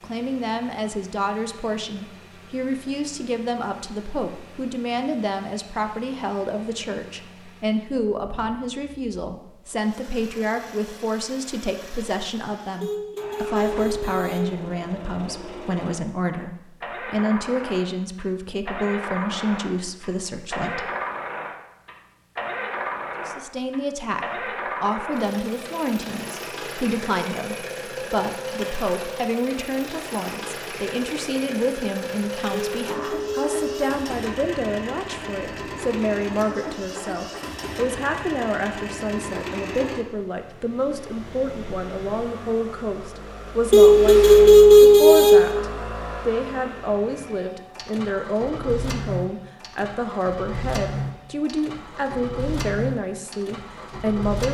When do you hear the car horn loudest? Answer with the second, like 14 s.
45 s.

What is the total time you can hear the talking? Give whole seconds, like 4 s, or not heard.
52 s.